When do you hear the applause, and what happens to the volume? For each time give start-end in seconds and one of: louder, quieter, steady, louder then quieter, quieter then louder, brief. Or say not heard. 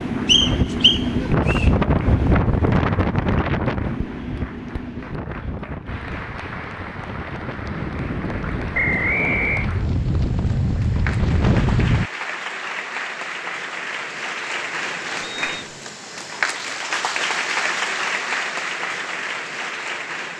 0.0-20.3 louder.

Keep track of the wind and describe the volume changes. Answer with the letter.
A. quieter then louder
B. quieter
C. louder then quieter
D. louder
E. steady
A.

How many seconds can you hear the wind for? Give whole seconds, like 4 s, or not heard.
12 s.